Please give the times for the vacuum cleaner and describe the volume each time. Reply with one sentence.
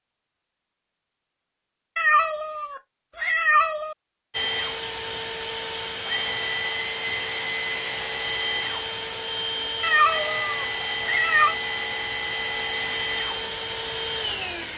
The vacuum cleaner can be heard from 4.3 to 14.7 s, at a steady volume.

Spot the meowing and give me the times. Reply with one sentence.
The meowing can be heard from 1.9 to 4.0 s and from 9.8 to 11.6 s.